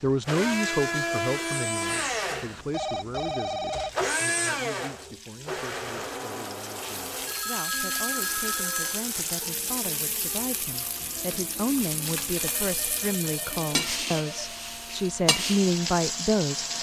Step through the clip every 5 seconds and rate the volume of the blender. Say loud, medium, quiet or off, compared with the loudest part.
loud, medium, quiet, quiet.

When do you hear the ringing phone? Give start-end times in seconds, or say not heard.
1.9-3.9, 7.2-9.1, 12.3-14.6.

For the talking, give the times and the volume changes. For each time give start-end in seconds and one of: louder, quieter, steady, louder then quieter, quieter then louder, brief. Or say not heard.
0.0-16.7 quieter then louder.